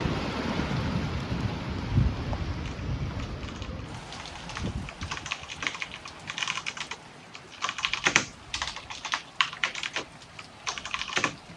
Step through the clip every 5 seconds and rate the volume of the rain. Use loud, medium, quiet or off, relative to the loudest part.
loud, quiet, quiet.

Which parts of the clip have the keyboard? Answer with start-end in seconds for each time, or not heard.
2.6-11.3.